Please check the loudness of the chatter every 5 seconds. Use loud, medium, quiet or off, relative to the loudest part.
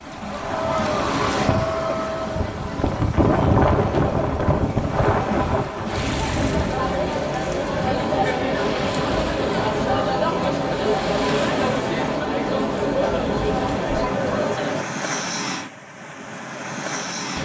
medium, loud, loud, off.